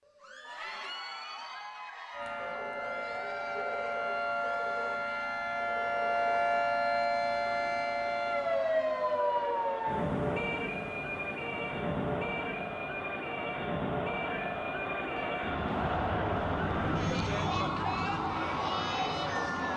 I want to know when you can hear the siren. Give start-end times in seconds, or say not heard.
2.1-19.7.